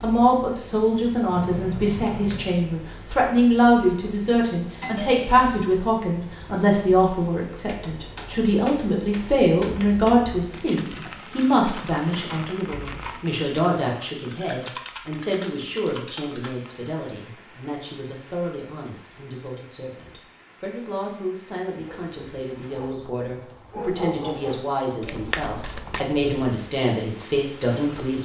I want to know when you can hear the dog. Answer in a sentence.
The dog can be heard from 21.8 to 24.6 s.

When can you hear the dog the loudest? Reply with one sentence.
The loudest moment of the dog is at 24 seconds.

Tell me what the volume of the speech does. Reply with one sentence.
The loudness of the speech goes down, then up.